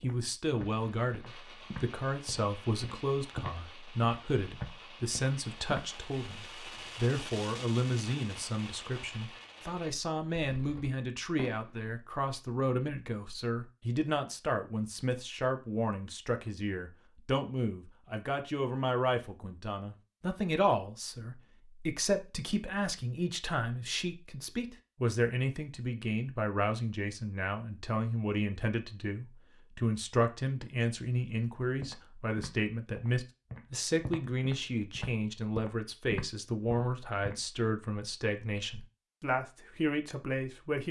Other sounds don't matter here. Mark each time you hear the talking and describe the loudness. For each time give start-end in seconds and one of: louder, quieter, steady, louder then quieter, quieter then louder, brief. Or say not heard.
0.0-40.8 steady.